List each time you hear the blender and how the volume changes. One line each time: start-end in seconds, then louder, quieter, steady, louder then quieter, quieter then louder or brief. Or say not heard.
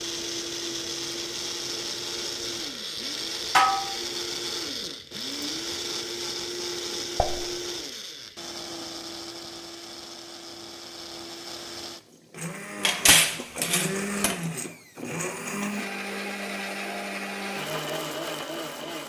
0.0-19.0 quieter then louder.